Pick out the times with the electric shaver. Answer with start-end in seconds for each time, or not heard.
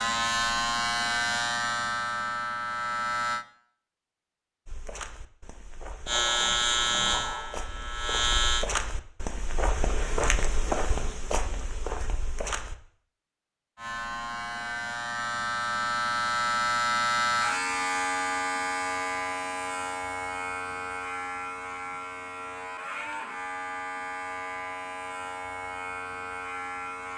0.0-3.5, 6.0-8.7, 13.8-27.1.